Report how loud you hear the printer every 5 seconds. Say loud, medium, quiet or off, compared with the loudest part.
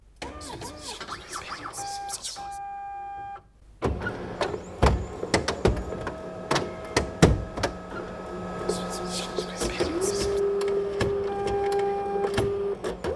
medium, loud, loud.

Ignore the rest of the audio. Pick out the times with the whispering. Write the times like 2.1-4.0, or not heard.
0.4-2.6, 8.7-10.4.